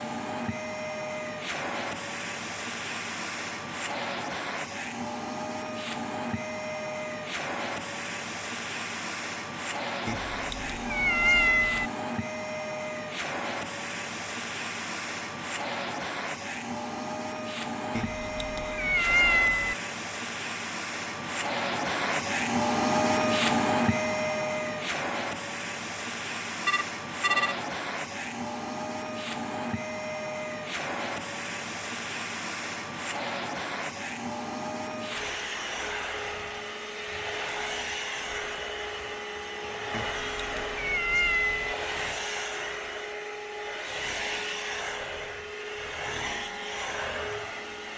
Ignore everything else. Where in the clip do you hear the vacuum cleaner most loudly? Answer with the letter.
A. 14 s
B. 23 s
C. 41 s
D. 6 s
B.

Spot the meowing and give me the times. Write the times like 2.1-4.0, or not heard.
10.1-11.9, 17.9-19.8, 39.9-41.8.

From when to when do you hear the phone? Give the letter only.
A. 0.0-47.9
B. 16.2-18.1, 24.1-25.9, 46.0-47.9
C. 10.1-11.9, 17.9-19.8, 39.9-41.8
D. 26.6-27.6
D.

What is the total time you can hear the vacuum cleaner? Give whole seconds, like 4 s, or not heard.
48 s.